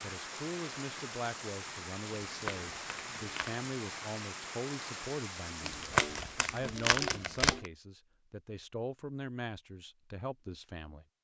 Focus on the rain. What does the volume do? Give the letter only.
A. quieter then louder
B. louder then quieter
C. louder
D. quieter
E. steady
E.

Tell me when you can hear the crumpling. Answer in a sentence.
You can hear the crumpling from 2.2 to 3.6 s and from 5.6 to 7.7 s.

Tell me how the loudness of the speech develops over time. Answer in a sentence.
The loudness of the speech stays about the same.